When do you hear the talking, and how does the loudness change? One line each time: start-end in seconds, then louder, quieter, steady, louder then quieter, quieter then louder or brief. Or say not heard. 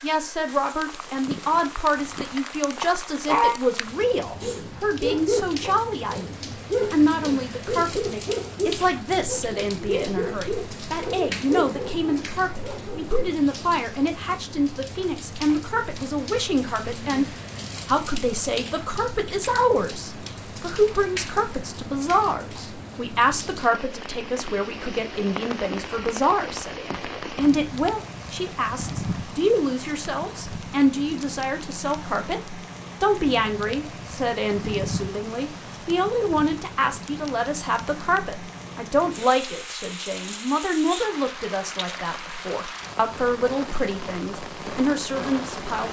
0.0-17.2 steady
17.9-45.8 steady.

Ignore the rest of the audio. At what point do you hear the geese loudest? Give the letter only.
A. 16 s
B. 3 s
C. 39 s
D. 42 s
B.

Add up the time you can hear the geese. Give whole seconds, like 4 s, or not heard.
2 s.